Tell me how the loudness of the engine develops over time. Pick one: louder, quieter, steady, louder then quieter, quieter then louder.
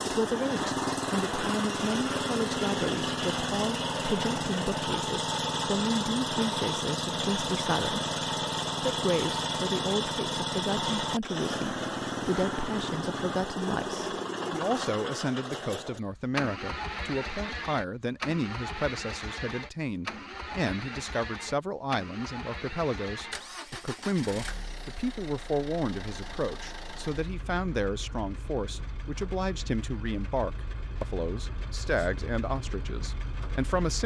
quieter.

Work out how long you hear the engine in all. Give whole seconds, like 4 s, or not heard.
34 s.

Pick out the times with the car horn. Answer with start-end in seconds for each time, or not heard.
not heard.